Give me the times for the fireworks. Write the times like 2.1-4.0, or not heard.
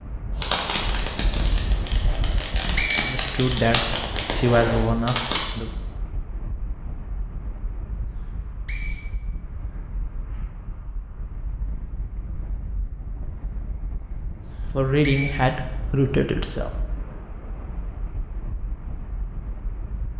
0.3-5.5.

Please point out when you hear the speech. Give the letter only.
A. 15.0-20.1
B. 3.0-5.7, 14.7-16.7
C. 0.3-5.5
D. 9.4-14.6
B.